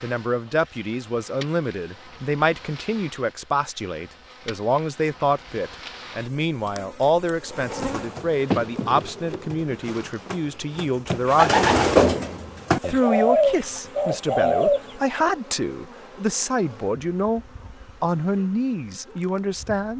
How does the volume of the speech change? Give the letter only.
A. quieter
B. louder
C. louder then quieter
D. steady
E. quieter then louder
D.